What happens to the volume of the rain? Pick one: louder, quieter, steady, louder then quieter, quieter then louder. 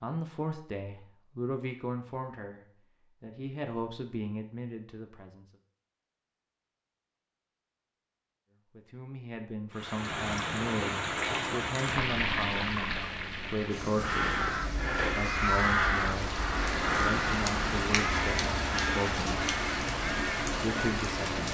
quieter then louder.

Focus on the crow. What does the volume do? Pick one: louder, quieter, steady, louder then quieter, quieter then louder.
quieter.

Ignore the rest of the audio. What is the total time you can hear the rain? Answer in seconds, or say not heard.
12 s.